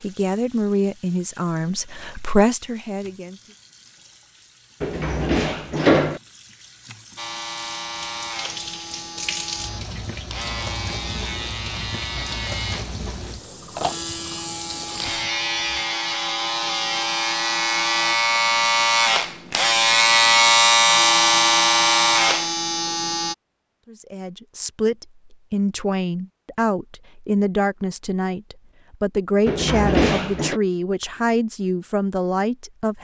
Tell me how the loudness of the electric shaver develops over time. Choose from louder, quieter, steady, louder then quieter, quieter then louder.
louder.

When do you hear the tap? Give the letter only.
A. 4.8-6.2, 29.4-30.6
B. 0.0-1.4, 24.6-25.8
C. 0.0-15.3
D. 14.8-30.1
C.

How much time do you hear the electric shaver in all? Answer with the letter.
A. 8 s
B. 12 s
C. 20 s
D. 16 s
D.